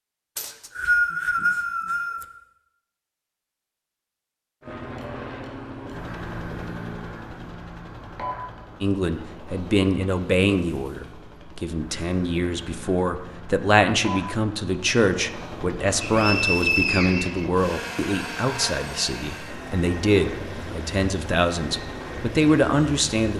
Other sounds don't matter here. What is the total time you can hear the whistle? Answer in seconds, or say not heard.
3 s.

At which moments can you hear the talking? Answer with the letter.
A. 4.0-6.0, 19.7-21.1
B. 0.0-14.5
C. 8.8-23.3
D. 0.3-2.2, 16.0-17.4
C.